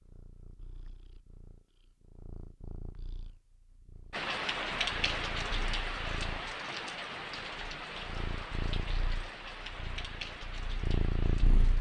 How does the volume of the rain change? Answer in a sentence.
The volume of the rain goes down.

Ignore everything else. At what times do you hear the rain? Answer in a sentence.
You can hear the rain from 4.1 to 11.7 s.